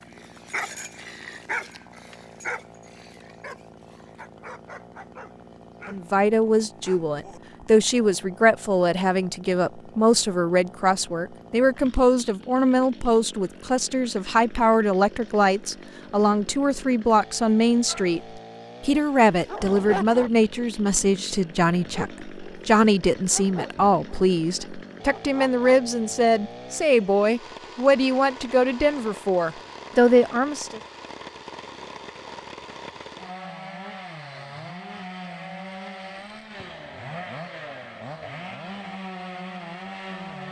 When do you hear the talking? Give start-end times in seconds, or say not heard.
5.8-30.8.